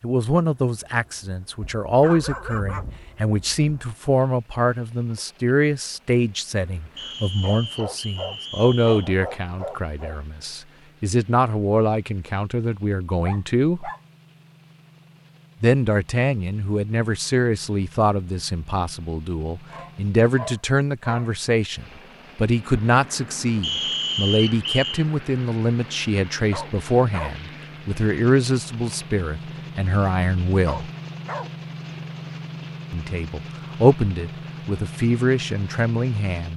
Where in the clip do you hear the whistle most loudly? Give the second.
24 s.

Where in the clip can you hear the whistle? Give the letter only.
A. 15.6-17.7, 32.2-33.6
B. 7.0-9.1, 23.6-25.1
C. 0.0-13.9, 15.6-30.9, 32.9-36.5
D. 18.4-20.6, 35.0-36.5
B.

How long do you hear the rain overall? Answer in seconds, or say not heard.
not heard.